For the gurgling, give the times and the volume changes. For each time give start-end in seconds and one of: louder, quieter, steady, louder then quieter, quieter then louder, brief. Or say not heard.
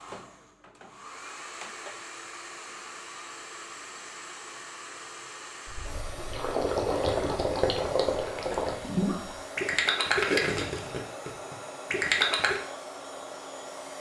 5.7-12.6 steady.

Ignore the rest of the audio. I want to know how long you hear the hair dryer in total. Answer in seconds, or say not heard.
14 s.